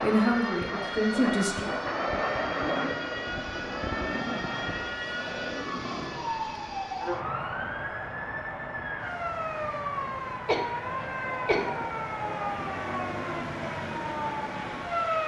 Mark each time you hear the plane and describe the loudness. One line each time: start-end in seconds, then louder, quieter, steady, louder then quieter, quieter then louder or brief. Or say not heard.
0.0-15.2 quieter.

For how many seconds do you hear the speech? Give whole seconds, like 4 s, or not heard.
2 s.